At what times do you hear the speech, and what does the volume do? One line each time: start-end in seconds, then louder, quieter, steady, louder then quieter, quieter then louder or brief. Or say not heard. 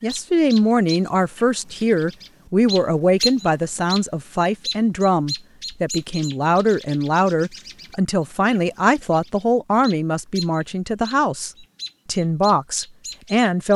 0.0-13.7 steady.